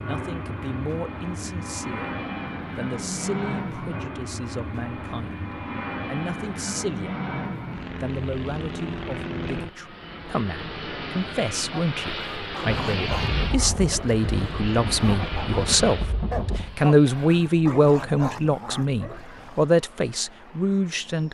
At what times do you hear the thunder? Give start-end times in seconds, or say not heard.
12.7-16.8.